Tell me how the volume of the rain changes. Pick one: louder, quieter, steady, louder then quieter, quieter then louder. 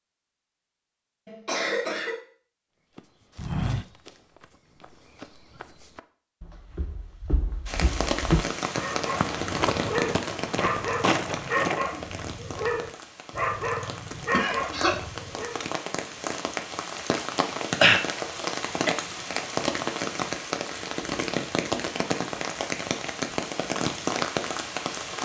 quieter then louder.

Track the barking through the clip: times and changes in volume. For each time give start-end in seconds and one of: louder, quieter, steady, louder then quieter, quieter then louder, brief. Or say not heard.
8.8-15.6 steady.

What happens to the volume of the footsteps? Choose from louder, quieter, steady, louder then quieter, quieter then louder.
quieter then louder.